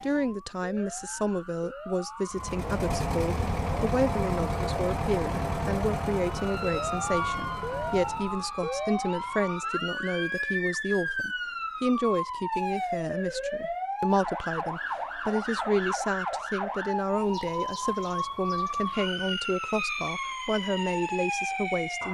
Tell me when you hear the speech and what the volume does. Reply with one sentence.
The speech can be heard from 0.0 to 22.0 s, at a steady volume.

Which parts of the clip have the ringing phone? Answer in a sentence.
The ringing phone can't be heard in this clip.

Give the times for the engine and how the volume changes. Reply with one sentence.
You can hear the engine from 2.3 to 8.4 s, getting quieter.